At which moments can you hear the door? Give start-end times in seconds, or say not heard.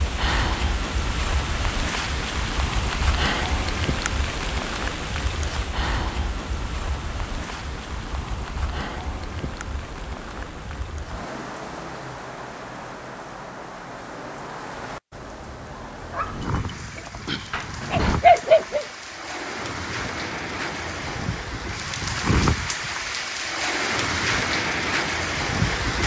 17.5-18.2.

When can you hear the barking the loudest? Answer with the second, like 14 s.
18 s.